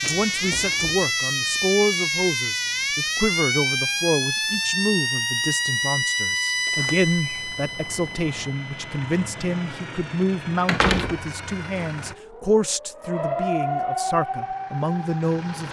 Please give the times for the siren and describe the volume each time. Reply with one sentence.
You can hear the siren from 0.0 to 15.6 s, getting quieter then louder.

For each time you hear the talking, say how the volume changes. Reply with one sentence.
You can hear the talking from 0.0 to 15.6 s, at a steady volume.